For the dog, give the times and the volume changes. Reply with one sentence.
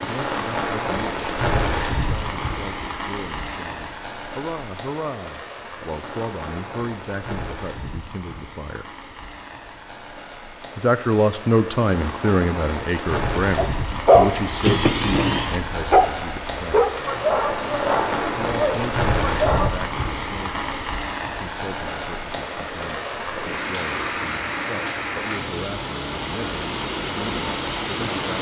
The dog can be heard from 13.6 to 19.7 s, getting quieter.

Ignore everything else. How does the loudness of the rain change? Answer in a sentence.
The volume of the rain goes down, then up.